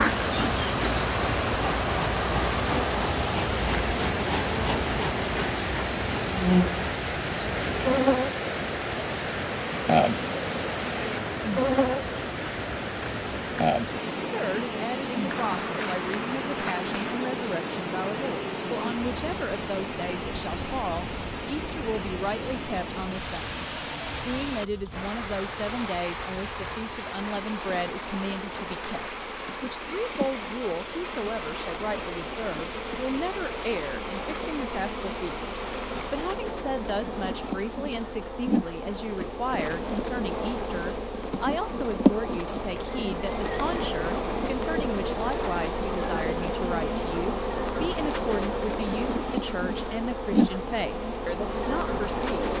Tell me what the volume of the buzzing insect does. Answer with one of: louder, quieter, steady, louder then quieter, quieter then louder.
quieter then louder.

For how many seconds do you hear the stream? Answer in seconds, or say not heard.
36 s.